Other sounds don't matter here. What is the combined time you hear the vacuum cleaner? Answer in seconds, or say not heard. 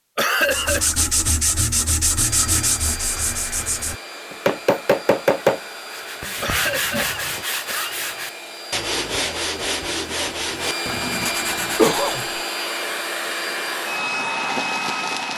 13 s.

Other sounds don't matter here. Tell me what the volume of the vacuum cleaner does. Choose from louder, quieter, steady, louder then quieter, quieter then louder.
louder.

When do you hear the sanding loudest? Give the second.
5 s.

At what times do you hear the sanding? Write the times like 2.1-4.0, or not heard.
0.4-12.2.